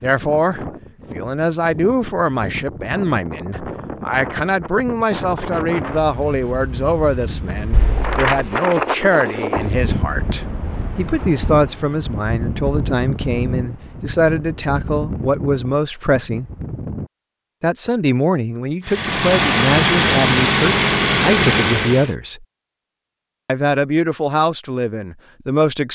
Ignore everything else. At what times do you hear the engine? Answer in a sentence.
You can hear the engine from 18.9 to 22.1 s.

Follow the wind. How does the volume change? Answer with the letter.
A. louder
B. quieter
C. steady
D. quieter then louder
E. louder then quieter
E.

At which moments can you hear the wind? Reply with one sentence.
You can hear the wind from 0.0 to 17.1 s.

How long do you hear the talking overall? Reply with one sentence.
The talking can be heard for 24 seconds in total.